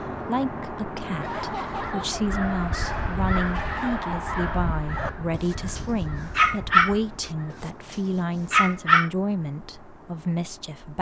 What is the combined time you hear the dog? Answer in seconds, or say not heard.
8 s.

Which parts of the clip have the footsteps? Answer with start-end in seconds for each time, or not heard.
not heard.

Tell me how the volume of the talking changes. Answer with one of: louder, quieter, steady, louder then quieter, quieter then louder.
steady.